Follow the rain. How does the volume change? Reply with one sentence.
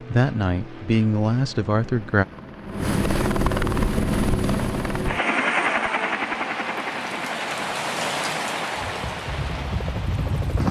The loudness of the rain goes up, then down.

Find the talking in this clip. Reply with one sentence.
The talking can be heard from 0.1 to 2.2 s.